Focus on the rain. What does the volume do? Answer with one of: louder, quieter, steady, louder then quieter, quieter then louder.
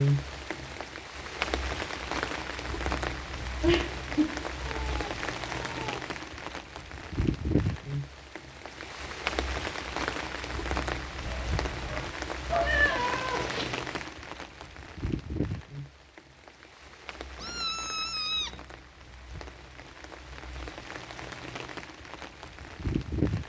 quieter.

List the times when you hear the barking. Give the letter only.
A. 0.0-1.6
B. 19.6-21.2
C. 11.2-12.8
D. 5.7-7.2
C.